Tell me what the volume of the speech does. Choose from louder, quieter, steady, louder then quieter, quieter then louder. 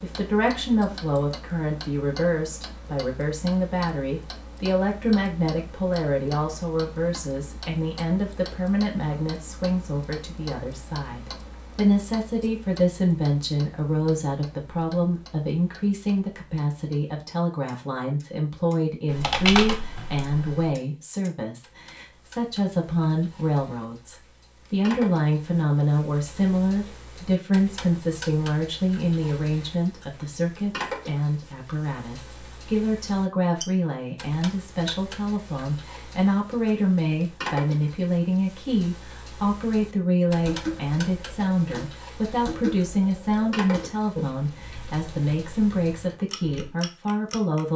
steady.